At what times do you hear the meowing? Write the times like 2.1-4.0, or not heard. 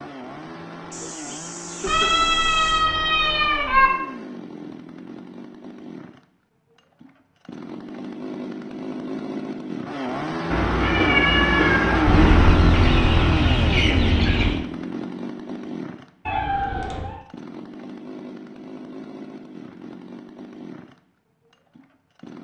1.9-3.9, 10.5-12.5, 16.2-17.2.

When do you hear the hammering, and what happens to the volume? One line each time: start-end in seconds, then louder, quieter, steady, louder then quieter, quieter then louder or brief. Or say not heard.
not heard.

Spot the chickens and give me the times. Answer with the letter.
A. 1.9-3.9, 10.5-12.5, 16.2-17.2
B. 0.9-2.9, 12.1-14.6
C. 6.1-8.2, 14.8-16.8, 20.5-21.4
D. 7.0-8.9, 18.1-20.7
B.